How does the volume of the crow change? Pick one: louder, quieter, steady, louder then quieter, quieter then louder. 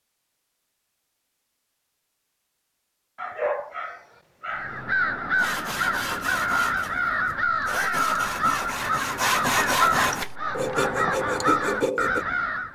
steady.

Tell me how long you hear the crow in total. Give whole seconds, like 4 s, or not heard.
8 s.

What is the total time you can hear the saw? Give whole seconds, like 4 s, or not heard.
7 s.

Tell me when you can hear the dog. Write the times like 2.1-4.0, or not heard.
3.1-4.8.